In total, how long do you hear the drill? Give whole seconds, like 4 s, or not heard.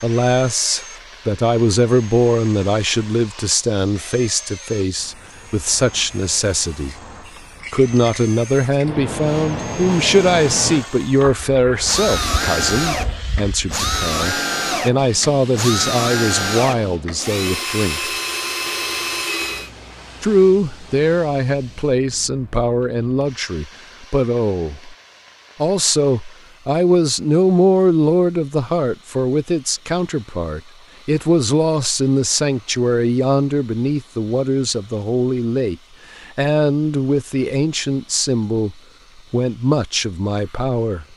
20 s.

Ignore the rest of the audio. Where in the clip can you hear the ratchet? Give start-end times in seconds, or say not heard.
not heard.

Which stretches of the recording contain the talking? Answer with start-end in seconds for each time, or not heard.
0.0-7.0, 7.7-18.1, 20.2-24.9, 25.6-41.0.